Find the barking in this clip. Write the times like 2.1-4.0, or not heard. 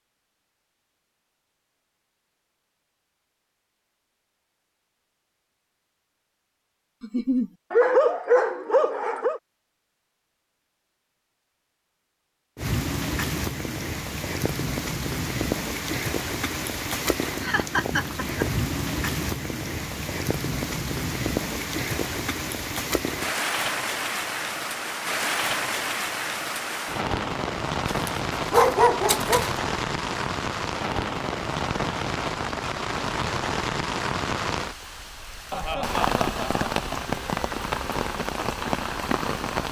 7.7-9.4, 27.9-29.5.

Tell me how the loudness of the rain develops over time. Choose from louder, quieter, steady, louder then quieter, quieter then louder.
steady.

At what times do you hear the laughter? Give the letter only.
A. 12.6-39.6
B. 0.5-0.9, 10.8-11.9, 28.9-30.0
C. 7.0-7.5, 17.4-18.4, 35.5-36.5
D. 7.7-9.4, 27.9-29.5
C.